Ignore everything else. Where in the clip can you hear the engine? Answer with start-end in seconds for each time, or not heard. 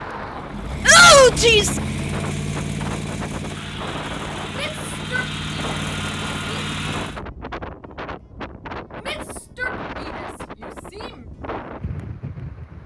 0.0-7.2.